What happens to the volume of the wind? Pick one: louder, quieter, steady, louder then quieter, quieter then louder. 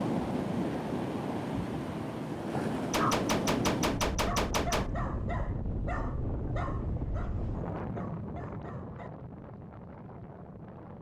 quieter.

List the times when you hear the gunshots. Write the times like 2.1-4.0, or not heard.
2.9-4.9.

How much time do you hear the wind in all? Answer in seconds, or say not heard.
11 s.